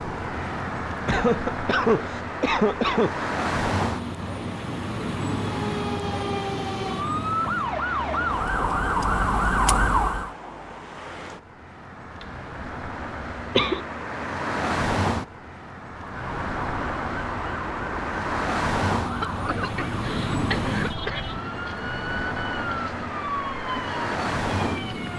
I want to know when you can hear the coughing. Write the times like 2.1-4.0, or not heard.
1.1-3.3, 13.3-13.8, 19.2-21.2.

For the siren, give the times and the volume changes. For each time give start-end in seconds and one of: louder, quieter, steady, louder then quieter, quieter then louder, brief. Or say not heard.
5.3-10.3 louder
15.9-25.1 steady.